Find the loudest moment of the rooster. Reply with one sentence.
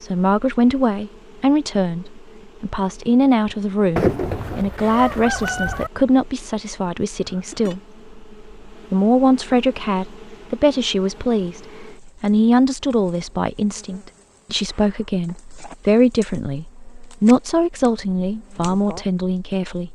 The volume of the rooster peaks at 4 seconds.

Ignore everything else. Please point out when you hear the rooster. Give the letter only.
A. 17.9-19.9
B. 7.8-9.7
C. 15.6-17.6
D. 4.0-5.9
D.